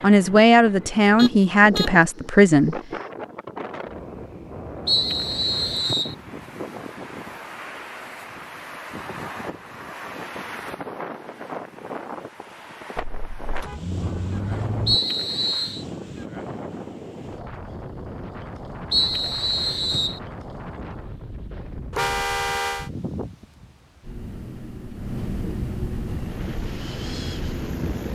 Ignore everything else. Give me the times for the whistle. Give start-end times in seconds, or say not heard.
4.8-6.2, 14.8-15.8, 18.9-20.2.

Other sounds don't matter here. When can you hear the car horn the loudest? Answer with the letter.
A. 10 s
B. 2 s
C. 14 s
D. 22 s
D.